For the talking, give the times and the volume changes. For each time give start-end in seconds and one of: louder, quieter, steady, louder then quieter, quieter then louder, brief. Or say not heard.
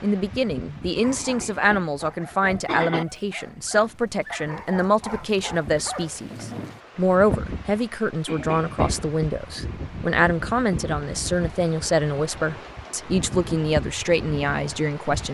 0.0-15.2 steady.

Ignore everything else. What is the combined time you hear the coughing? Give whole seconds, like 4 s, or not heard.
3 s.